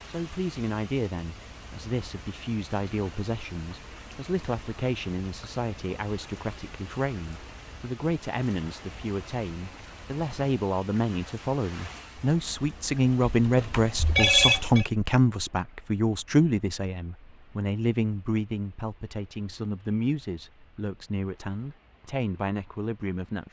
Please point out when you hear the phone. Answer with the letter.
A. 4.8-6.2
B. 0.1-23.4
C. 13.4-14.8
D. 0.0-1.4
C.